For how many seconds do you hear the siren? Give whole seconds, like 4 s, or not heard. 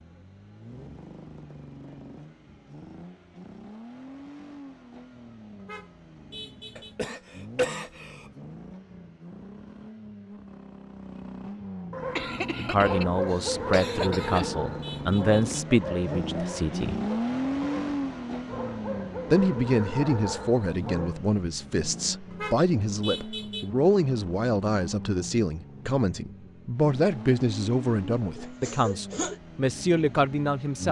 not heard.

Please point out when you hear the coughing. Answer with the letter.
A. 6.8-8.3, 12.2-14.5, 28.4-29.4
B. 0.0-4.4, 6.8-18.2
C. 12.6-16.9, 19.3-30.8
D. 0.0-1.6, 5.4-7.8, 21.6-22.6
A.